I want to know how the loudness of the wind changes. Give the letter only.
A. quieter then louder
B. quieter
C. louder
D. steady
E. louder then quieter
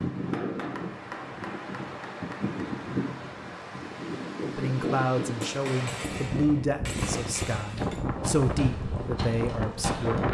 D.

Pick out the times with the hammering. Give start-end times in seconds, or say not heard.
0.2-2.5, 5.4-8.1.